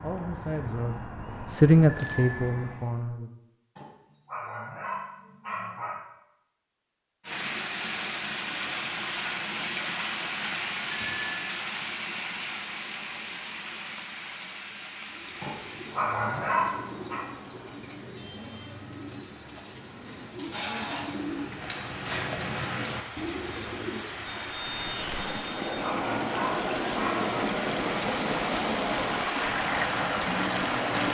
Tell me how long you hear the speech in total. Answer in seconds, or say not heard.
3 s.